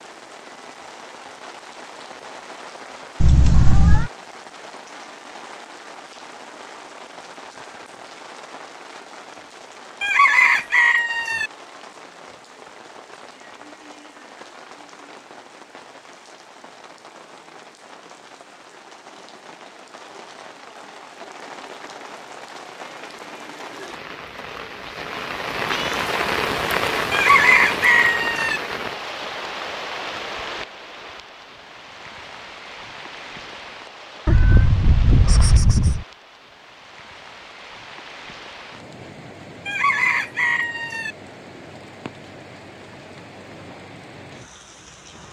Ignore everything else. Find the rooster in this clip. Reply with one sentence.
The rooster can be heard from 10.0 to 11.5 s, from 27.1 to 28.6 s and from 39.6 to 41.1 s.